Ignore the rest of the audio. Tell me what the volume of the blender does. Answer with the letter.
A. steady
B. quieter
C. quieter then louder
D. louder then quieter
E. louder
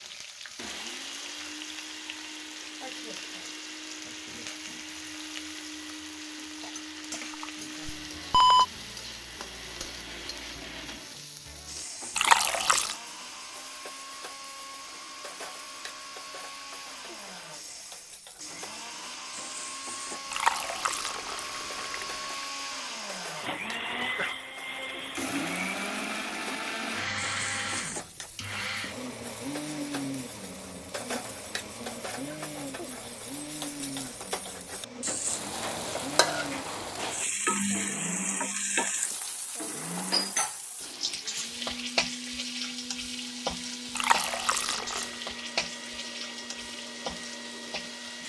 D.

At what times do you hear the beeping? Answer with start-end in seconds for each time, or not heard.
7.3-8.7.